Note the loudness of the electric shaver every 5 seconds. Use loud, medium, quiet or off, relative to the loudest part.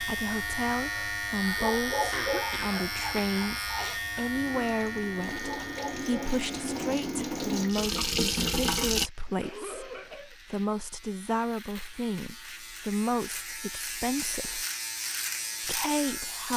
loud, medium, medium, loud.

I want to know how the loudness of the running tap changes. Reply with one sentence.
The loudness of the running tap goes up.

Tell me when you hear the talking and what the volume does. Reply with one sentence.
The talking can be heard from 0.0 to 14.7 s, at a steady volume; and briefly from 15.6 to 16.5 s.